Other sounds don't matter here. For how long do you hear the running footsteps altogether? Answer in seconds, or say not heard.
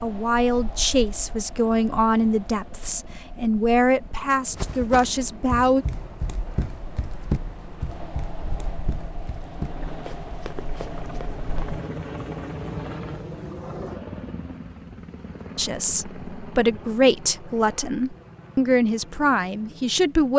7 s.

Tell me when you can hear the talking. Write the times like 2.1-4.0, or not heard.
0.0-5.8, 15.6-20.3.